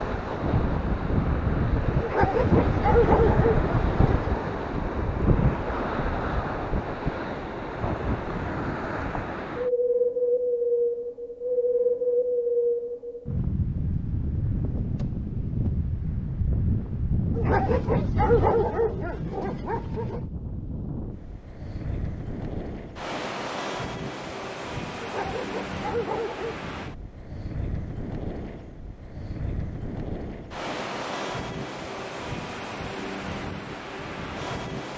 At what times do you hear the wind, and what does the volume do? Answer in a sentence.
You can hear the wind from 0.0 to 34.9 s, getting quieter.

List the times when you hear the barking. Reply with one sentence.
You can hear the barking from 2.0 to 4.4 s, from 17.4 to 20.2 s and from 25.0 to 26.6 s.